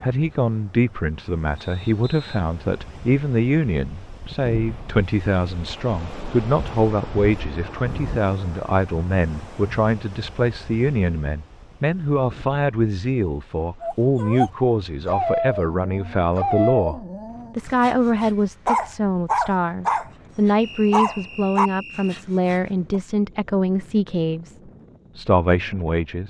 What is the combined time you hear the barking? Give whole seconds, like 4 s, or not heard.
9 s.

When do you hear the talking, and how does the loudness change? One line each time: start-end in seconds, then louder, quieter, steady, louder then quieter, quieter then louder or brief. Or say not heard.
0.0-24.6 steady
25.1-26.2 brief.